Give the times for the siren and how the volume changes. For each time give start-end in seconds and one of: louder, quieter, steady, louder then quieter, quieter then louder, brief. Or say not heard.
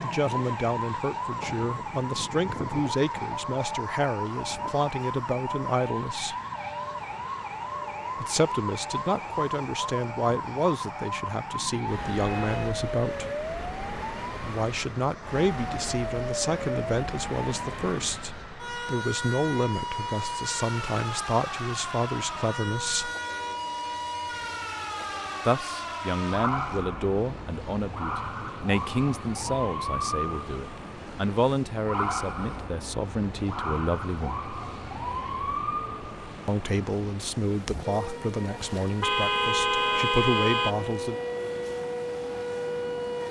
0.0-43.2 steady.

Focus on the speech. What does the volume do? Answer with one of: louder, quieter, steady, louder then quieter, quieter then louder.
steady.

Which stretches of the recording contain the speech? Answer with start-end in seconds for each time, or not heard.
0.0-6.3, 8.2-13.3, 14.4-23.1, 25.4-34.4, 36.5-41.1.